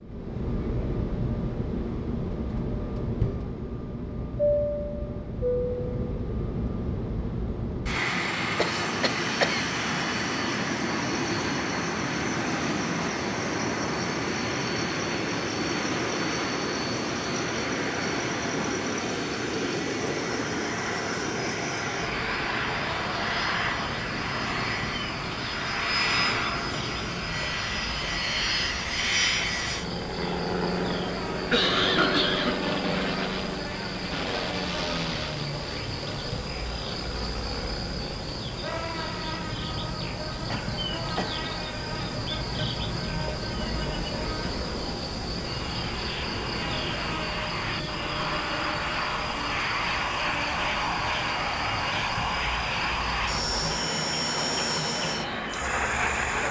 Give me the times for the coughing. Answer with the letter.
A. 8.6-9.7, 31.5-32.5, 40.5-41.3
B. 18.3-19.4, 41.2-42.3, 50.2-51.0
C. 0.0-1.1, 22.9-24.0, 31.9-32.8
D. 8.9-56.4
A.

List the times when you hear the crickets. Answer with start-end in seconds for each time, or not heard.
8.9-56.4.